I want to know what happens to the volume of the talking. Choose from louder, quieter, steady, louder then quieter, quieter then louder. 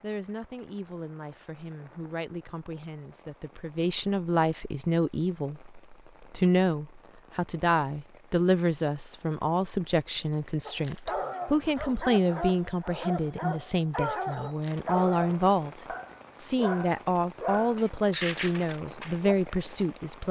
louder.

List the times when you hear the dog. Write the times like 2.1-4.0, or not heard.
10.7-19.4.